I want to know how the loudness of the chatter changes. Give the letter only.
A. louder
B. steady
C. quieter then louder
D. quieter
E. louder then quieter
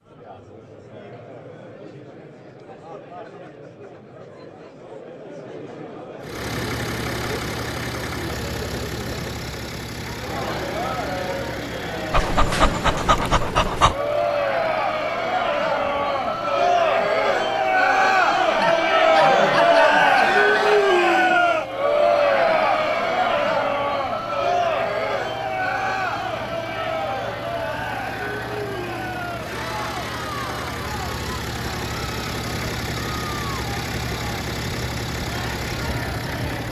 E.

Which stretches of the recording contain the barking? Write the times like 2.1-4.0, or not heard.
12.1-13.9, 18.6-20.2.